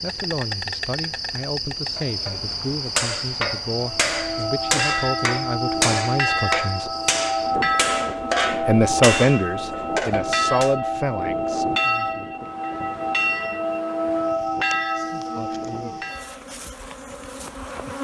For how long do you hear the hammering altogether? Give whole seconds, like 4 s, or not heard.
9 s.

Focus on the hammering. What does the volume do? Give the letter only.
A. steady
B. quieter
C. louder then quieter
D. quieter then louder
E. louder
A.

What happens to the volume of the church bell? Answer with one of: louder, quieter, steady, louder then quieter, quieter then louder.
steady.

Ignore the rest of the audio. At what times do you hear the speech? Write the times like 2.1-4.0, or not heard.
0.0-6.9, 8.4-11.8.